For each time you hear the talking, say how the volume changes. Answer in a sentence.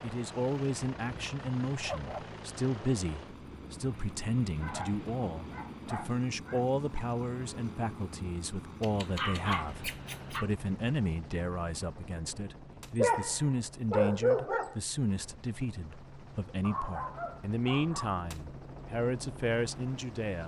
The talking can be heard from 0.0 to 20.4 s, at a steady volume.